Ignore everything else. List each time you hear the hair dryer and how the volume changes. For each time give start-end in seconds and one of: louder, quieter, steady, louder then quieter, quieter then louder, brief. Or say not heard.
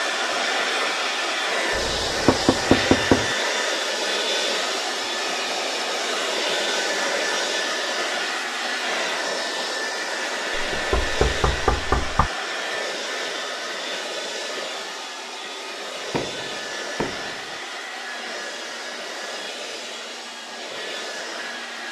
0.0-21.8 quieter.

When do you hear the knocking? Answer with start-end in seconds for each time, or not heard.
1.7-3.3, 10.5-12.3, 16.1-17.6.